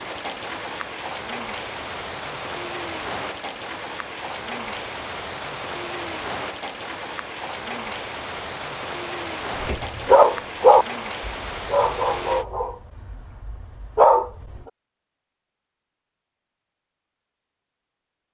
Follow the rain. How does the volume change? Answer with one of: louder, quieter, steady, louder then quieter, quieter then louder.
steady.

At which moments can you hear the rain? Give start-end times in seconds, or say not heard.
0.0-12.4.